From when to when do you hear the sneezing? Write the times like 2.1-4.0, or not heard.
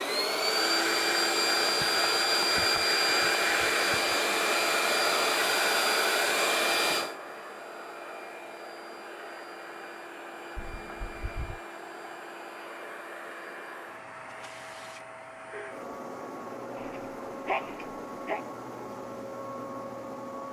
1.8-4.2, 10.6-11.6, 16.8-18.4.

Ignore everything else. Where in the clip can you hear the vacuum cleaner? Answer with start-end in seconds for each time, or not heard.
0.0-20.4.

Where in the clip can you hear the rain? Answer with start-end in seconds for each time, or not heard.
not heard.